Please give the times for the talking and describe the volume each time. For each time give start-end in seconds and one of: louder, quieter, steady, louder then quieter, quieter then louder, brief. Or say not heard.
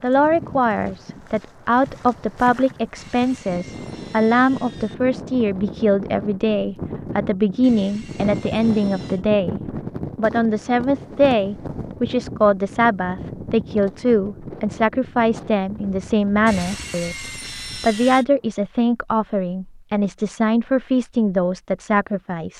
0.0-22.5 steady.